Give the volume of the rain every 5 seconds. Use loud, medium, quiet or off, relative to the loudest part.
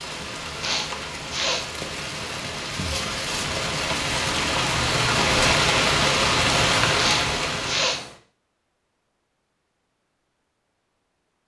medium, loud, off.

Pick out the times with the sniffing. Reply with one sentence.
The sniffing can be heard from 0.6 to 1.6 s and from 7.0 to 8.0 s.